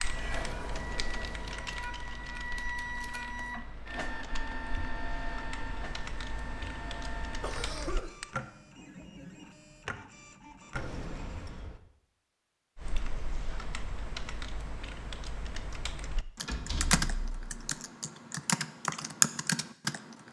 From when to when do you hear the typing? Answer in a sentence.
The typing can be heard from 0.0 to 8.2 s and from 12.8 to 20.2 s.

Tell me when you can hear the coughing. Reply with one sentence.
You can hear the coughing from 7.4 to 8.2 s.